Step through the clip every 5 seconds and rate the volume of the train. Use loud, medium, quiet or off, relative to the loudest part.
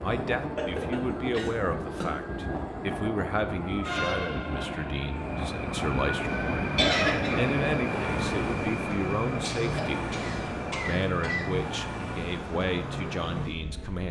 medium, loud, medium.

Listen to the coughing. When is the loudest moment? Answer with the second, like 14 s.
7 s.